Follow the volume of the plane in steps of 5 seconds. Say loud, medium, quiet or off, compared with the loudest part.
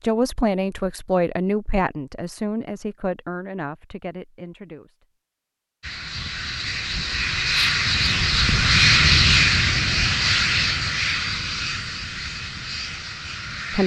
off, loud, medium.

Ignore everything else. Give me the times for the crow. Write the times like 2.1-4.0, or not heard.
not heard.